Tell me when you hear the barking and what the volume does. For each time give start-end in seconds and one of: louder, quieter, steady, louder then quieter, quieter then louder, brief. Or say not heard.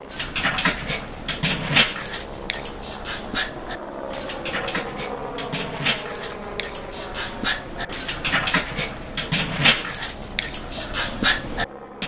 0.1-12.0 quieter then louder.